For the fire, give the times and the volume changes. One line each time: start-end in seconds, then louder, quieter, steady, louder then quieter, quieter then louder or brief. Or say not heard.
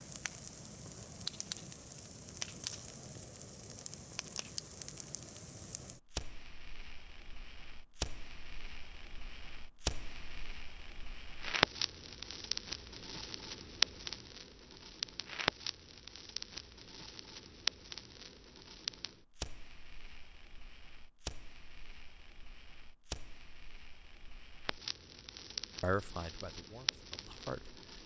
0.0-28.0 louder then quieter.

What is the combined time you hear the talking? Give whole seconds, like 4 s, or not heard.
2 s.